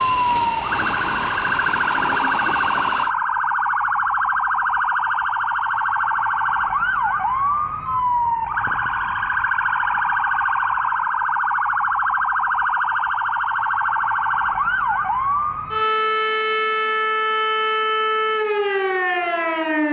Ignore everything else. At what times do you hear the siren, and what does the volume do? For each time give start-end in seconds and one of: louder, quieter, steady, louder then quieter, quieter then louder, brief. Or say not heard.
0.0-19.8 steady.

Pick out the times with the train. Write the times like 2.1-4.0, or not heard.
0.0-3.1.